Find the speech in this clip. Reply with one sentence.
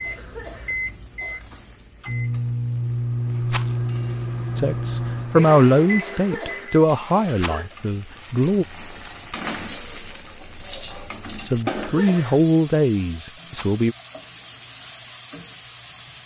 You can hear the speech from 4.5 to 8.7 s and from 11.4 to 13.9 s.